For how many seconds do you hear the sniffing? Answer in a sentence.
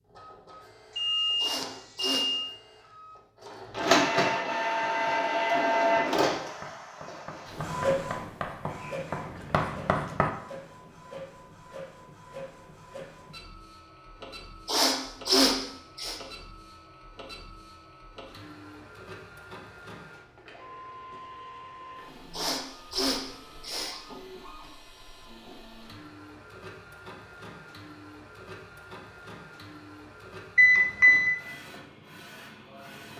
You can hear the sniffing for 4 seconds altogether.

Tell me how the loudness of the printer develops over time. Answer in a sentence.
The volume of the printer goes down.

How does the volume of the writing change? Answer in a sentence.
The volume of the writing goes up.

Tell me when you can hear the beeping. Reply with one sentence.
You can hear the beeping from 0.9 to 2.5 s and from 30.6 to 31.3 s.